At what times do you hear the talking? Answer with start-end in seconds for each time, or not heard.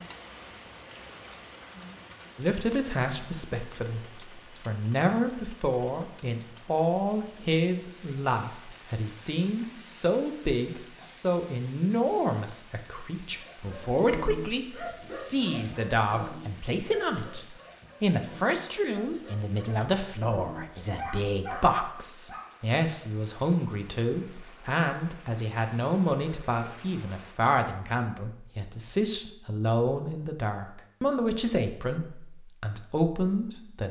2.4-33.8.